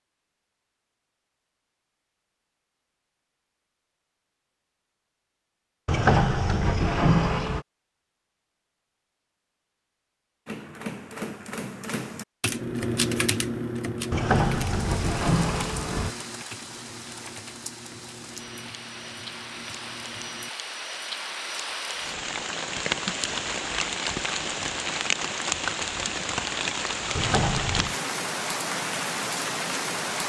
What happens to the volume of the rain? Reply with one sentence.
The volume of the rain goes up.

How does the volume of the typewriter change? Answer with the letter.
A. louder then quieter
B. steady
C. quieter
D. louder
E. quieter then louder
A.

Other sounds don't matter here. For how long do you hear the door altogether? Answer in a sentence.
You can hear the door for 5 seconds altogether.